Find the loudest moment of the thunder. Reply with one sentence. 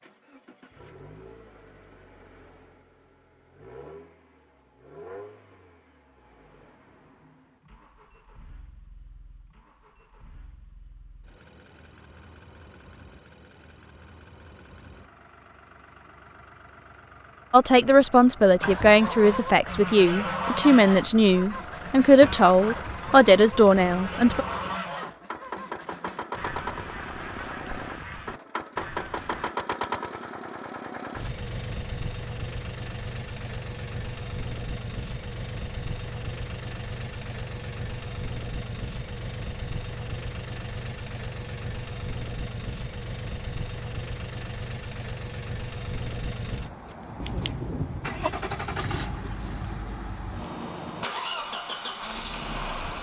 The volume of the thunder peaks at 48 seconds.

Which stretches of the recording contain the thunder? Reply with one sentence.
The thunder can be heard from 47.2 to 49.8 s.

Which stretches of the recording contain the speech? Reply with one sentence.
The speech can be heard from 17.5 to 24.4 s.